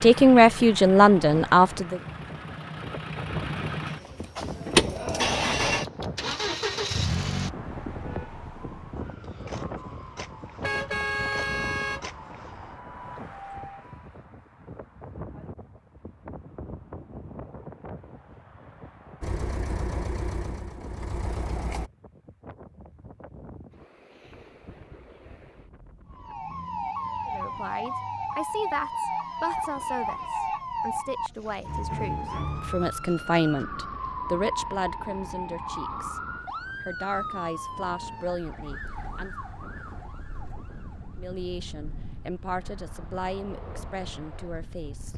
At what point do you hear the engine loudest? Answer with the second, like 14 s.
5 s.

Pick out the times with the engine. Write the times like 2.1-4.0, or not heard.
0.0-7.5, 19.2-21.9.